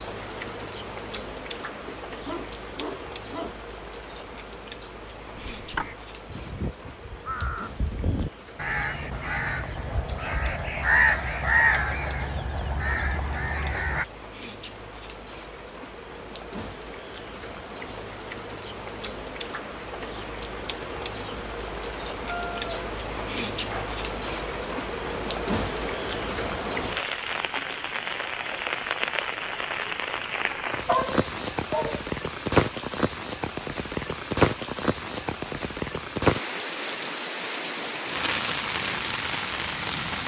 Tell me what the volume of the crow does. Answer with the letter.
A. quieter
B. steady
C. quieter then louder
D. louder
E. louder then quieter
E.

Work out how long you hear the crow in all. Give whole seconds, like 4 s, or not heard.
9 s.